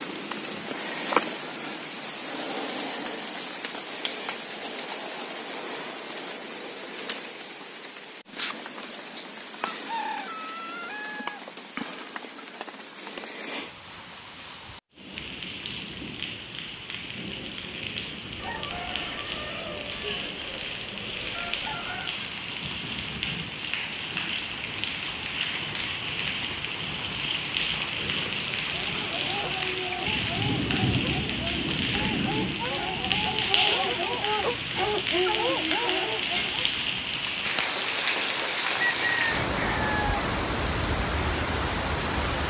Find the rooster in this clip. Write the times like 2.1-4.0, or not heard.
9.7-11.4, 18.4-22.1, 38.8-40.5.